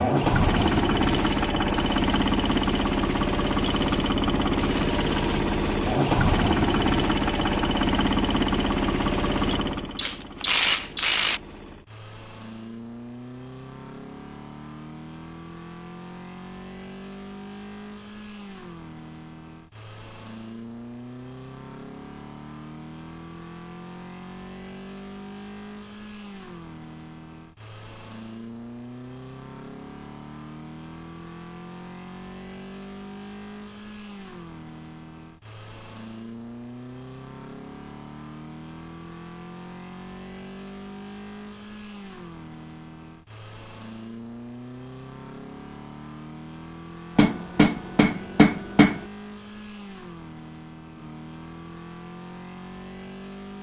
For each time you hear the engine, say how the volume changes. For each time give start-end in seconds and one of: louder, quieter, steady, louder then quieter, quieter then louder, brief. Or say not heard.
0.0-53.5 quieter.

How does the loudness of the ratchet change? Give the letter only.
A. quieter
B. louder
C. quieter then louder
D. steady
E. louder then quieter
B.